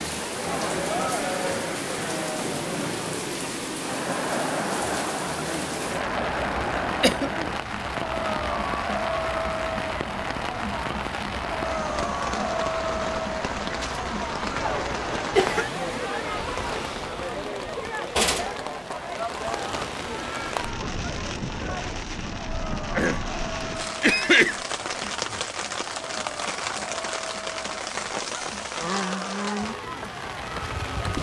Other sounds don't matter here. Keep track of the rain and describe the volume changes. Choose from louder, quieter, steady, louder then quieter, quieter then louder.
steady.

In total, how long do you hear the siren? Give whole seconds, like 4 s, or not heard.
not heard.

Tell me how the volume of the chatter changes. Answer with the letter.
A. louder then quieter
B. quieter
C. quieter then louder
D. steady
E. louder
B.